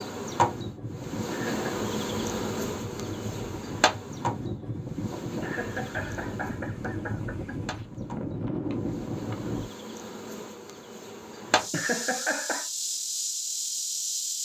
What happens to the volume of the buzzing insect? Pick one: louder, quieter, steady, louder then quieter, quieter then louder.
quieter then louder.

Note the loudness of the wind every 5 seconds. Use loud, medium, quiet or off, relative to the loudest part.
loud, loud, off.